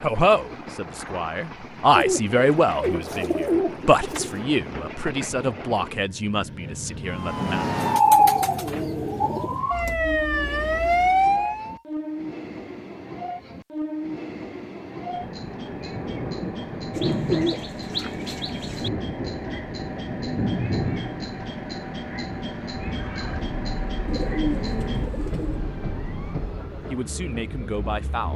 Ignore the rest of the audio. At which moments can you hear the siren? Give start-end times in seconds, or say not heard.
7.1-11.8, 22.9-26.8.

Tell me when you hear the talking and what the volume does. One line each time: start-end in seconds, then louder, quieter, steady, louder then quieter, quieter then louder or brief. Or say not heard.
0.0-7.7 louder then quieter
26.9-28.3 brief.